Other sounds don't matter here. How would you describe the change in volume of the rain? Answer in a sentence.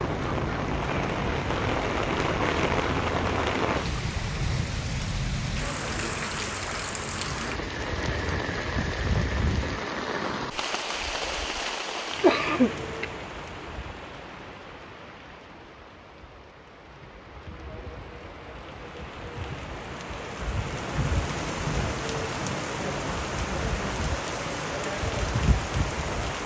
The volume of the rain goes down, then up.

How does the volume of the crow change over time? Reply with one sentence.
The loudness of the crow stays about the same.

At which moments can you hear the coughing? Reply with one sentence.
You can hear the coughing from 12.1 to 13.1 s.